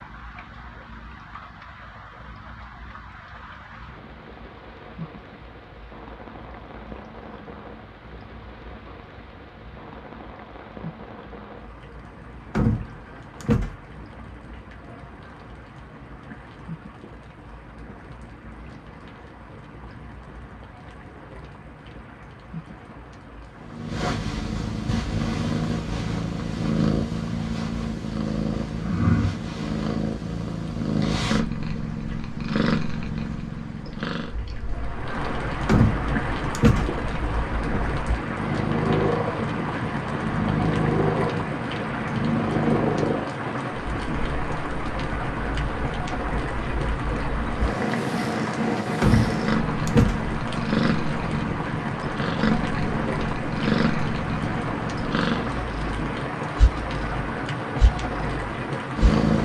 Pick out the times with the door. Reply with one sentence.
You can hear the door from 12.6 to 13.8 s, from 35.6 to 37.0 s and from 49.0 to 50.4 s.